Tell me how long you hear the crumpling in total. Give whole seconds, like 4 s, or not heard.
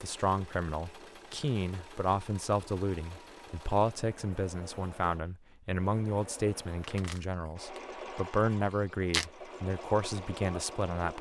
2 s.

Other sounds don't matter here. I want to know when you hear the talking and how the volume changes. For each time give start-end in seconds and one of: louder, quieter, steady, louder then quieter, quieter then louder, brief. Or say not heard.
0.0-11.1 steady.